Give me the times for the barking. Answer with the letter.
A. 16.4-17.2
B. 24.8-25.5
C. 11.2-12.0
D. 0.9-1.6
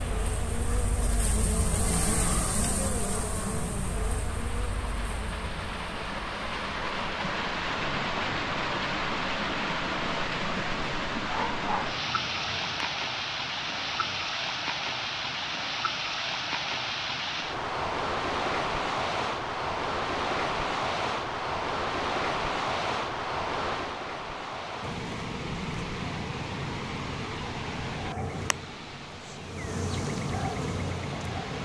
C.